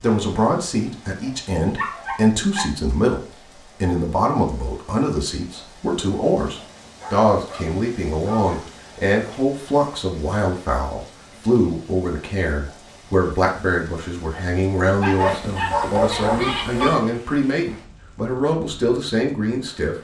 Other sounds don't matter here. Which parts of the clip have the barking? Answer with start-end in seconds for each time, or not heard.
1.8-2.7, 6.8-8.7, 15.0-17.0.